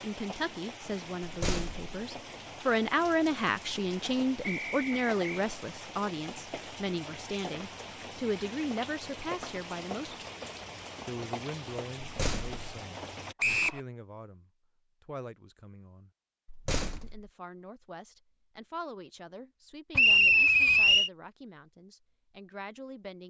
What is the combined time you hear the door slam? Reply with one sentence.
The door slam can be heard for 2 seconds in total.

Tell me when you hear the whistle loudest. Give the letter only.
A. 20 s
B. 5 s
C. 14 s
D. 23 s
A.